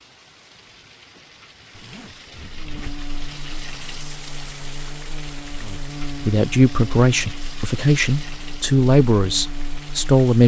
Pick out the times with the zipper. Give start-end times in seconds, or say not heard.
1.8-3.1.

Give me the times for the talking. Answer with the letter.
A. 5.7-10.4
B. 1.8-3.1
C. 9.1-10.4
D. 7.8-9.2
A.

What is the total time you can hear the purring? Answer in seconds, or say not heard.
not heard.